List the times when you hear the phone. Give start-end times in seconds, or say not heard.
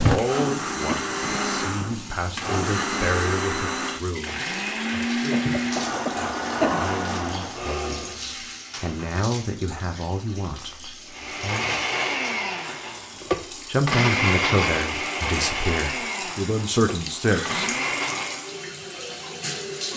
0.8-1.9.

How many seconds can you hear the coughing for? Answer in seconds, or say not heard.
2 s.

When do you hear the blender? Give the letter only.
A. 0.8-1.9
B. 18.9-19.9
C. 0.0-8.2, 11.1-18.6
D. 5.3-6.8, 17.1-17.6
C.